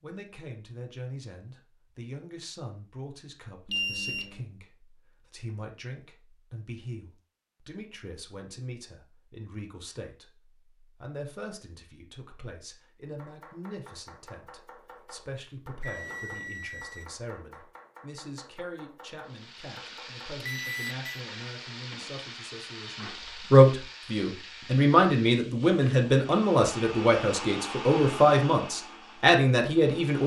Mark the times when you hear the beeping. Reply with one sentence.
The beeping can be heard from 3.6 to 4.4 s, from 15.8 to 17.1 s and from 20.4 to 20.9 s.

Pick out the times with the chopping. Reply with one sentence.
You can hear the chopping from 13.1 to 20.5 s.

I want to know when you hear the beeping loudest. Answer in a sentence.
The loudest moment of the beeping is at 4 seconds.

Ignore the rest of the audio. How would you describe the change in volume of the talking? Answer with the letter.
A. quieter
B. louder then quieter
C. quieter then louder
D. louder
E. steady
D.